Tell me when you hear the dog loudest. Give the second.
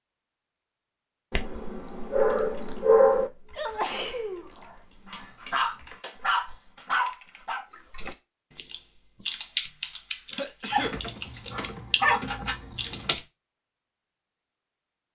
3 s.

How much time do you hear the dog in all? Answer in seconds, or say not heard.
7 s.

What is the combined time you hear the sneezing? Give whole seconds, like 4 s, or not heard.
2 s.